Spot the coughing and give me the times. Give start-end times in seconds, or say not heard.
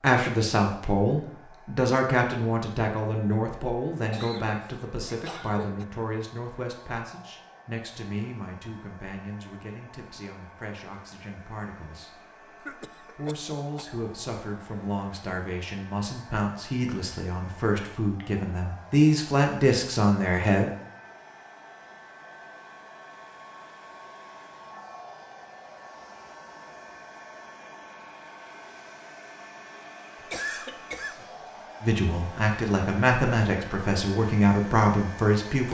4.1-5.8, 12.6-13.8, 30.1-31.4.